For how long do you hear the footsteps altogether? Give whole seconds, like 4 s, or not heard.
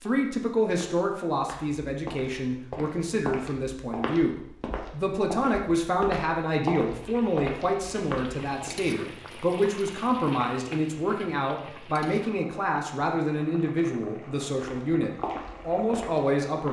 11 s.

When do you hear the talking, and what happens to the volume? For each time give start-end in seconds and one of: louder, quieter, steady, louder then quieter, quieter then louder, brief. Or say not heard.
0.0-16.6 steady.